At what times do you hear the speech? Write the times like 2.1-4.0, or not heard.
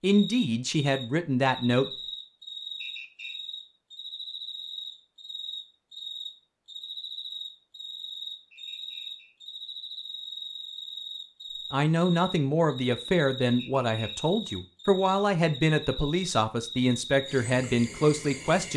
0.0-1.9, 11.7-18.7.